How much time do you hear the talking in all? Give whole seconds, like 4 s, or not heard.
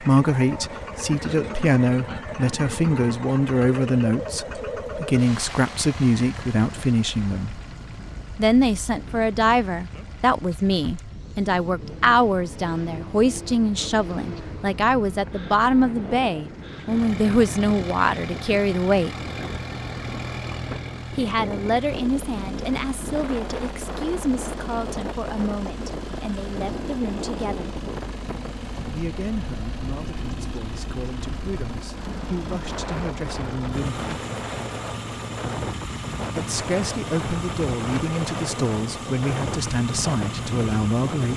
35 s.